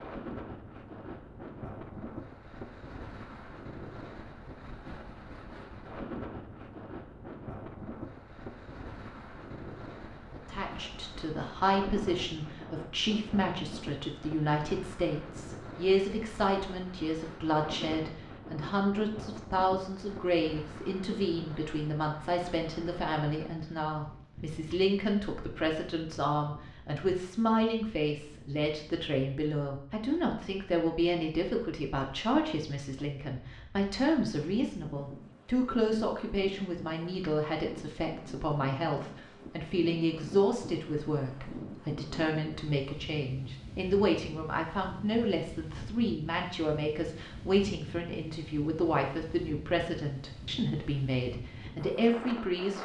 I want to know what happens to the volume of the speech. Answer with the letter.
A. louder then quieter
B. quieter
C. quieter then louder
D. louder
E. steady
E.